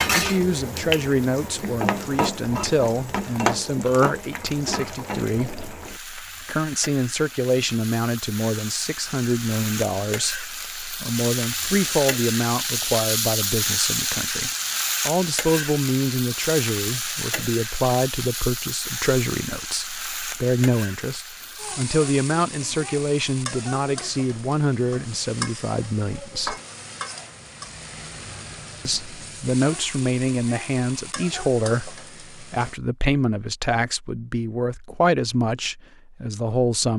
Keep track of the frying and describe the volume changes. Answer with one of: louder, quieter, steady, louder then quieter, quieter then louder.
quieter.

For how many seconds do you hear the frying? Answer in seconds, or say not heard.
33 s.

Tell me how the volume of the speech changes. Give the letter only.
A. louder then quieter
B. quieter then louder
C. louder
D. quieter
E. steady
E.